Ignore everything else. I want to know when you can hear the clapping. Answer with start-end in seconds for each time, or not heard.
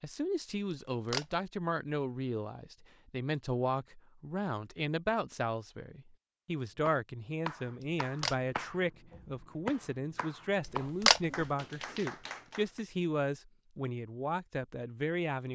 6.8-12.8.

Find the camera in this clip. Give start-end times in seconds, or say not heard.
0.7-1.2, 7.8-8.3, 10.7-11.2.